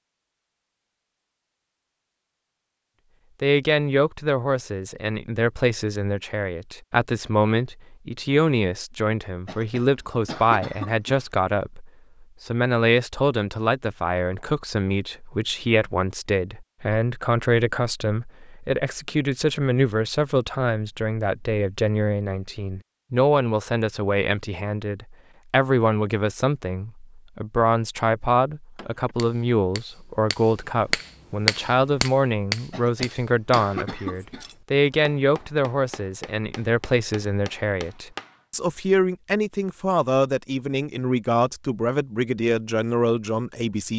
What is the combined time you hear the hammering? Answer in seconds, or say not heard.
10 s.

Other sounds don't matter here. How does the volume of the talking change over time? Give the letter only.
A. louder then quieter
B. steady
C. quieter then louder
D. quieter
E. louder
B.